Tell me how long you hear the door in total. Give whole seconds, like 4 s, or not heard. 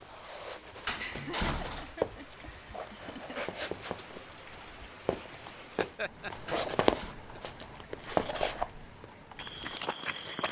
2 s.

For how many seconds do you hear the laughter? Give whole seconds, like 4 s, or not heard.
4 s.